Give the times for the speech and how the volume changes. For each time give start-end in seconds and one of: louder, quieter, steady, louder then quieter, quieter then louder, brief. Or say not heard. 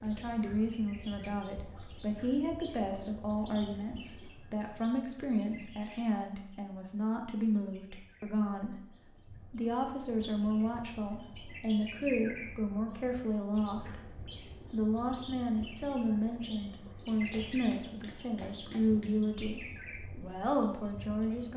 0.0-21.5 steady.